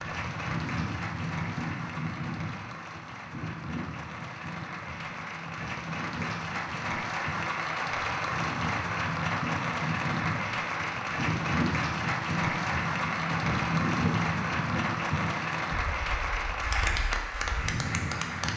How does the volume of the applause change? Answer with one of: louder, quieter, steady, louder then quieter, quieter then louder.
louder.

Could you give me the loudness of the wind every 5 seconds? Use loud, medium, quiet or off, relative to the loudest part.
medium, medium, loud, medium.